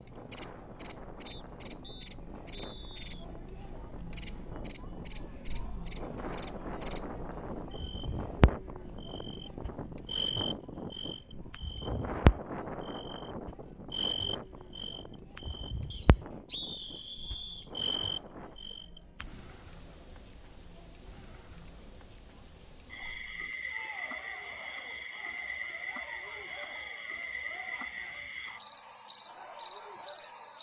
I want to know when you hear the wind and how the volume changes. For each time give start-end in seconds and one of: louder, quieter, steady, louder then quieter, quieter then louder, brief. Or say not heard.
0.0-18.6 louder then quieter.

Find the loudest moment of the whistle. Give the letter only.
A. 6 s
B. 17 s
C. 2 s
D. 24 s
B.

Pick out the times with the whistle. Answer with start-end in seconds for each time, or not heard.
1.2-3.2, 15.9-17.7.